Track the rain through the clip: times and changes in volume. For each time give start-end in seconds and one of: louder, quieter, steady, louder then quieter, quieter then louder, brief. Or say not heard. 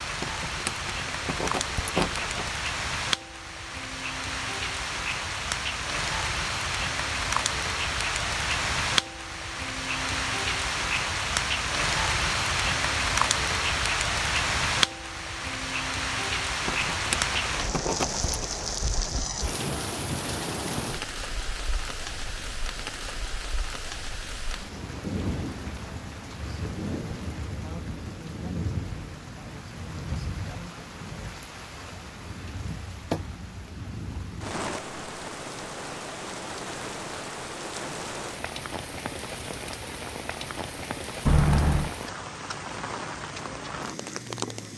0.0-44.7 quieter.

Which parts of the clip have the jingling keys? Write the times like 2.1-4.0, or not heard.
0.2-2.5, 16.6-18.4, 41.2-42.0.